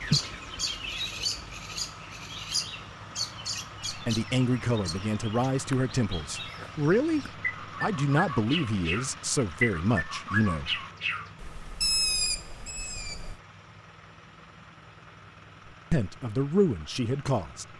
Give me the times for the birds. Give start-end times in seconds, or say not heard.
0.0-13.3.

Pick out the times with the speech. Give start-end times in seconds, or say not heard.
3.9-10.8, 15.9-17.6.